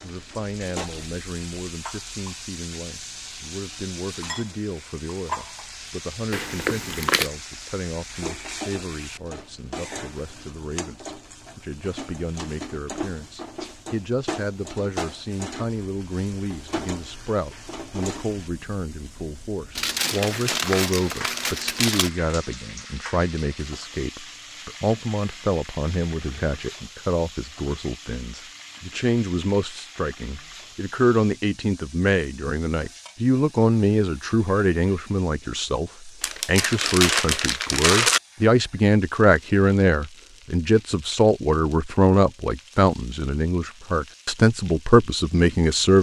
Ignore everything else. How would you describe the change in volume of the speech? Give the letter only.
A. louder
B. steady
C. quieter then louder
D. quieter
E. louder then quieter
A.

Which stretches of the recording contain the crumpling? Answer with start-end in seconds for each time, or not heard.
6.3-7.3, 19.8-22.1, 36.2-38.2.